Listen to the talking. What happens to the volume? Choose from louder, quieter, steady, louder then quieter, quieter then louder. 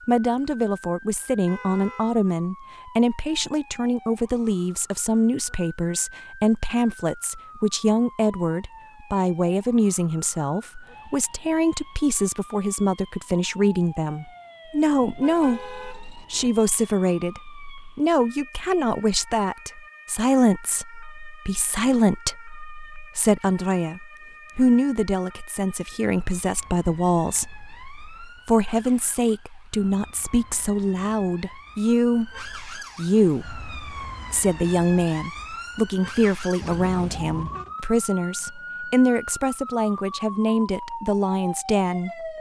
steady.